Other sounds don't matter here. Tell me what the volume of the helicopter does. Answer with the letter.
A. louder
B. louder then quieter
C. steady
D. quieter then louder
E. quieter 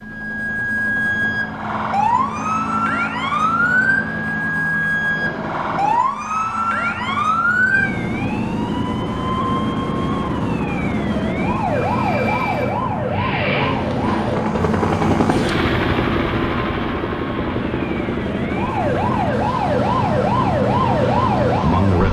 B.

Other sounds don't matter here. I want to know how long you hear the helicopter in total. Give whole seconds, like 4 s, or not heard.
22 s.